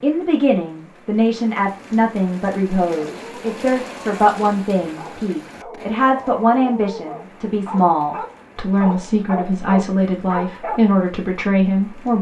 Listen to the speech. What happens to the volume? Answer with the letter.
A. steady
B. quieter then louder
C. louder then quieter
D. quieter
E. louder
A.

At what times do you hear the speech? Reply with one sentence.
You can hear the speech from 0.0 to 12.1 s.